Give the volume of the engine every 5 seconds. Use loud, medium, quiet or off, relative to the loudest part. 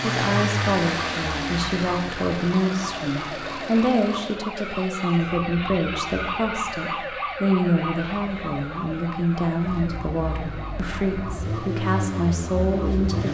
loud, quiet, loud.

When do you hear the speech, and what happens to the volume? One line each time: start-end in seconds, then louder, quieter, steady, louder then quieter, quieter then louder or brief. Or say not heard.
0.0-13.2 steady.